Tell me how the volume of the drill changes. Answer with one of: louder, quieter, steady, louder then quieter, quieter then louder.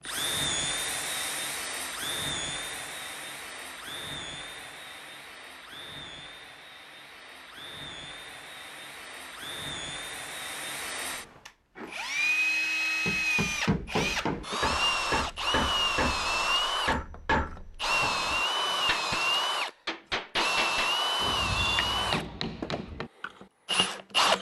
quieter then louder.